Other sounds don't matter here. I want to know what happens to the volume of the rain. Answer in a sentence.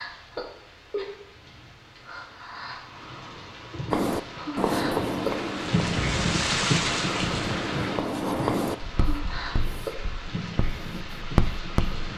The loudness of the rain goes up, then down.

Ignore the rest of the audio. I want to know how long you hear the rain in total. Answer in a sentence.
The rain can be heard for 12 seconds in total.